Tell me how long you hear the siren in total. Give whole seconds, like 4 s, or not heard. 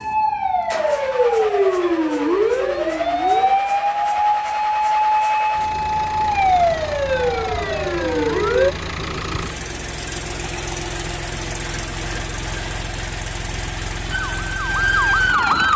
10 s.